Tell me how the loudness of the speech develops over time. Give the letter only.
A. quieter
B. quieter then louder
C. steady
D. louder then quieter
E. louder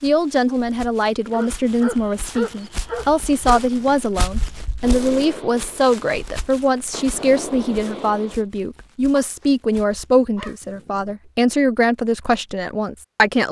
C.